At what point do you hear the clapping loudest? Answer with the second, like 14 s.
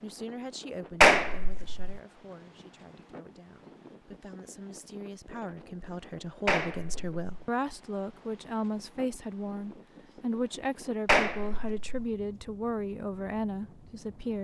1 s.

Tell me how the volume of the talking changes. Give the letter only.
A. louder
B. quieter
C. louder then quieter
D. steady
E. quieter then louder
A.